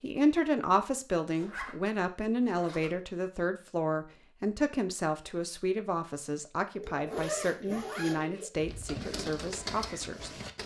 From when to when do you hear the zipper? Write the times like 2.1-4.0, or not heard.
1.4-3.0, 6.8-8.2.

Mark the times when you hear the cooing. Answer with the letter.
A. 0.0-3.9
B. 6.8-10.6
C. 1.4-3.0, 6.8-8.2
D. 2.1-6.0
B.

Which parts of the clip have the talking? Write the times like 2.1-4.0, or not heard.
0.0-10.3.